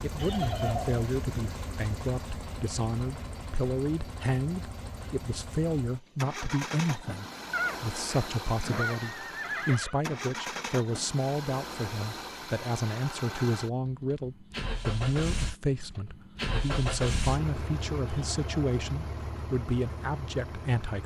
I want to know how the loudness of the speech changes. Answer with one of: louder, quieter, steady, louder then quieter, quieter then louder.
steady.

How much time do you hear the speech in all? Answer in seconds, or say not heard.
21 s.